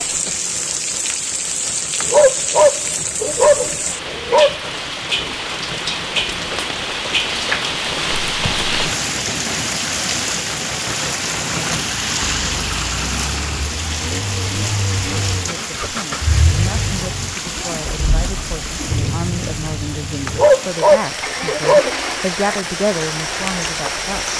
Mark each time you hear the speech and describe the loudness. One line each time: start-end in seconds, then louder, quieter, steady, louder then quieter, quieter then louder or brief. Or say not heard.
15.5-24.3 louder.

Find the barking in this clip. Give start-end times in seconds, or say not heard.
2.0-4.5, 20.2-21.9.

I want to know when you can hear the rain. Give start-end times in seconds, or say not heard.
0.0-24.3.